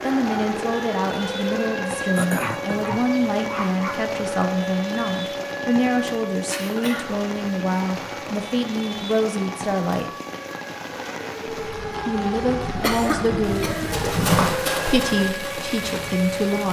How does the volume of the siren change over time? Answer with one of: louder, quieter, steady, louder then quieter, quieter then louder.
quieter then louder.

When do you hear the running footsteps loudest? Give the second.
14 s.